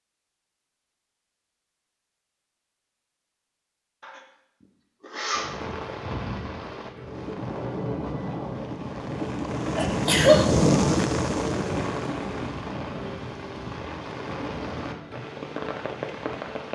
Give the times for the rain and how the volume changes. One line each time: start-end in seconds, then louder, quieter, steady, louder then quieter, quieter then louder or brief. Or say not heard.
5.3-16.7 louder then quieter.